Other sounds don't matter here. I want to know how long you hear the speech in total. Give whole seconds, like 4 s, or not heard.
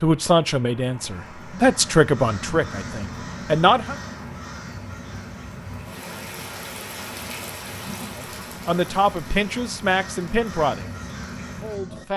7 s.